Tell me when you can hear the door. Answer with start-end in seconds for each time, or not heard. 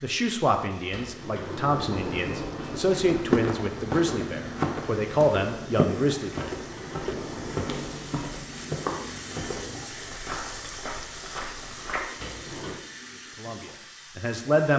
0.9-3.2, 6.5-8.2, 12.2-12.8.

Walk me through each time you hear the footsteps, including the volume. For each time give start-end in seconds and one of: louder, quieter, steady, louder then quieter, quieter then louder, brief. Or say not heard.
3.0-12.1 quieter.